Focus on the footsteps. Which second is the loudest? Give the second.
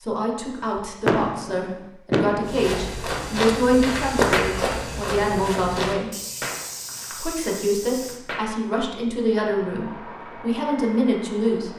4 s.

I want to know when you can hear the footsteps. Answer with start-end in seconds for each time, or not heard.
2.5-8.2.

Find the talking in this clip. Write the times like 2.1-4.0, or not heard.
0.0-6.1, 7.2-11.7.